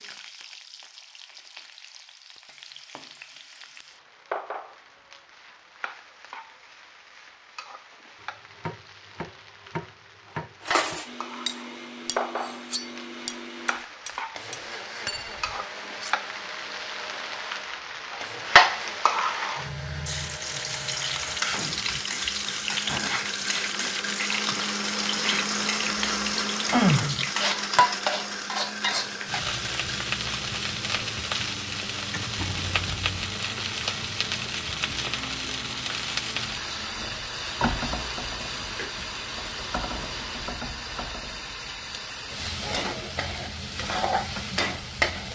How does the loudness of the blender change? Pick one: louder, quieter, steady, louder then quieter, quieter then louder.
louder then quieter.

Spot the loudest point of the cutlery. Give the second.
11 s.